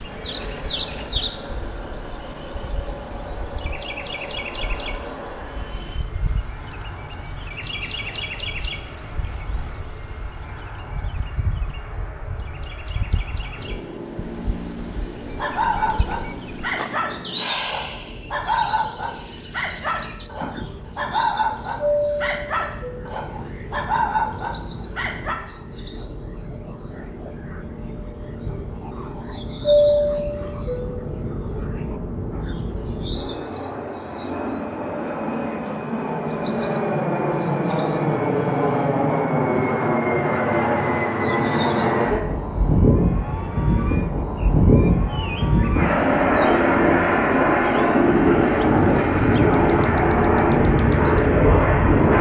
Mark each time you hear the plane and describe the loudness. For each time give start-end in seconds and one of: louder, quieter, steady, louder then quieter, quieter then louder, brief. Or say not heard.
0.0-52.1 louder.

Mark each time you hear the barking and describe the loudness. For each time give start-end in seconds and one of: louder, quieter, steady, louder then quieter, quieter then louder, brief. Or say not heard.
15.2-25.4 steady.